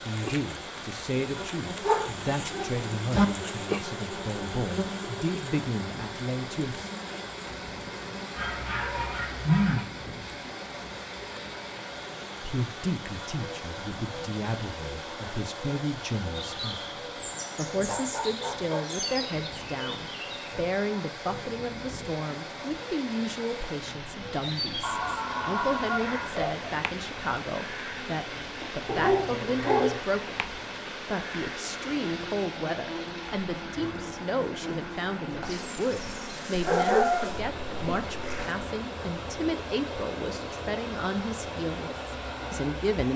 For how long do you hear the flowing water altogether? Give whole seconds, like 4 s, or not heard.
43 s.